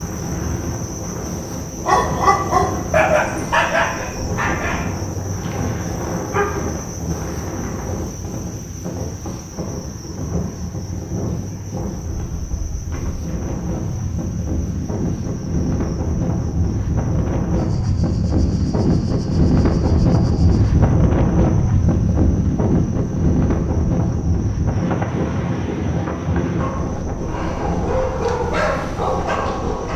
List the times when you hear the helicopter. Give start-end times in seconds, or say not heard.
not heard.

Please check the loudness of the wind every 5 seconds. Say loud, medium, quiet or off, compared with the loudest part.
medium, medium, medium, loud, loud, medium.